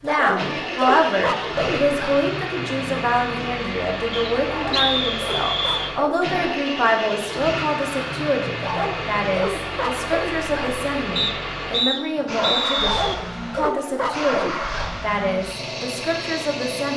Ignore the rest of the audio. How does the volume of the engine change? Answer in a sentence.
The loudness of the engine stays about the same.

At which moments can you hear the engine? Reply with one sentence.
The engine can be heard from 0.0 to 16.9 s.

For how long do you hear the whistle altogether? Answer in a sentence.
The whistle can be heard for 4 seconds in total.